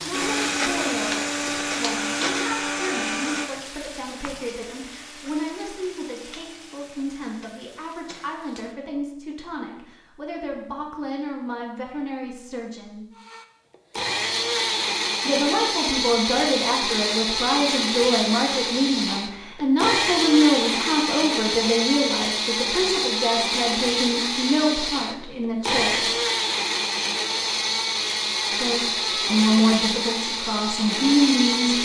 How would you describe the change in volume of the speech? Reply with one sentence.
The loudness of the speech goes up.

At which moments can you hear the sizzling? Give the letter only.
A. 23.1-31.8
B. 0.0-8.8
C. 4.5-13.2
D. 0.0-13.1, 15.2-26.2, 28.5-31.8
B.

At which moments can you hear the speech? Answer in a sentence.
You can hear the speech from 0.0 to 13.1 s, from 15.2 to 26.2 s and from 28.5 to 31.8 s.